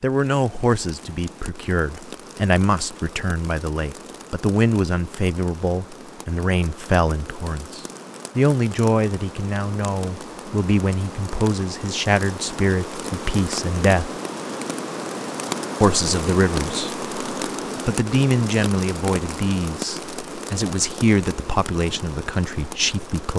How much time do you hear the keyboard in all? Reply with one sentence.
You can't hear the keyboard here.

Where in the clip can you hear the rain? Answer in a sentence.
The rain can be heard from 0.0 to 23.3 s.